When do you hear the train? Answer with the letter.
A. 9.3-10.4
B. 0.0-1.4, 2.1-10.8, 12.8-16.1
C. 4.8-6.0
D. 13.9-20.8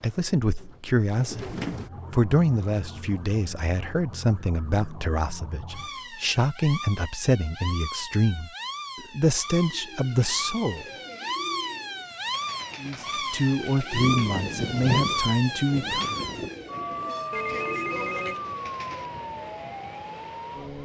D.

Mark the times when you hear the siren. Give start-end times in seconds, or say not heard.
1.9-20.8.